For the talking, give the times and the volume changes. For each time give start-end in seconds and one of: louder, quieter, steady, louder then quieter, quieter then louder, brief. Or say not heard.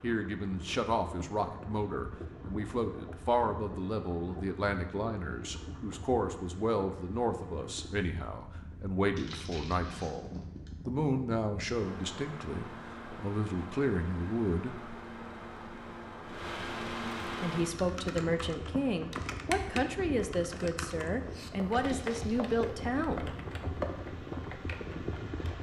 0.0-14.9 steady
17.4-23.2 steady.